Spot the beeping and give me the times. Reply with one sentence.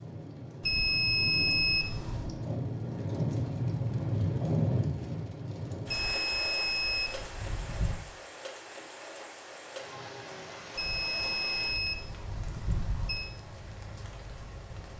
You can hear the beeping from 0.6 to 2.4 s, from 5.8 to 8.1 s and from 10.8 to 13.3 s.